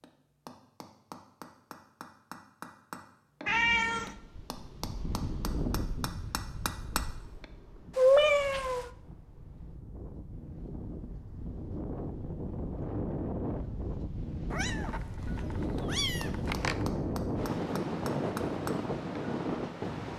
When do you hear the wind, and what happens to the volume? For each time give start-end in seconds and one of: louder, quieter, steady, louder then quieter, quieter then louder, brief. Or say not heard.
4.0-20.1 quieter then louder.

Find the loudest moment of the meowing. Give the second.
8 s.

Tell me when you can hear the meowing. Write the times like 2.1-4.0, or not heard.
3.5-4.2, 8.0-8.8, 14.5-16.9.